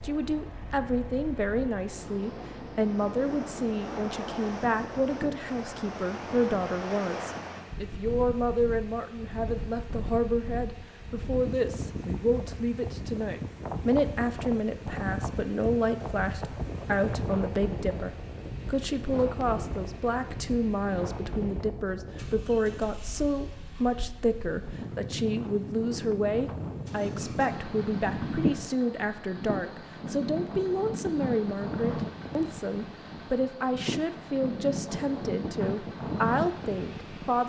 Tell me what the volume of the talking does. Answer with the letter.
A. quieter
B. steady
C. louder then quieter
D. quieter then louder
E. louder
B.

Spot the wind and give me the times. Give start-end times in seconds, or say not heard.
0.0-37.4.